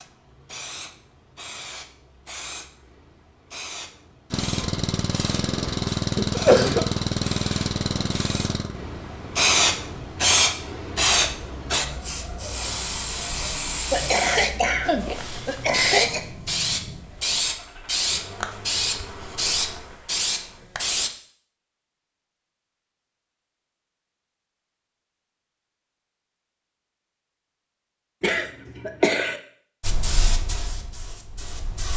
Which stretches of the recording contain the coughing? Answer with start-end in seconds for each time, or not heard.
6.2-6.8, 13.9-16.2, 28.2-29.4.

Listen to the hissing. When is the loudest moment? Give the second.
10 s.